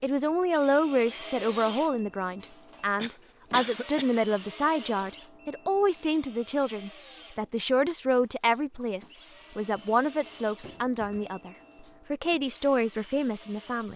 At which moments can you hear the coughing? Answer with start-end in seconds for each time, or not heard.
3.0-4.0, 10.6-11.4.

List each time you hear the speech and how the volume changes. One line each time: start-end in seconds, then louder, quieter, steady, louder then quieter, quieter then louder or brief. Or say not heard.
0.0-13.9 steady.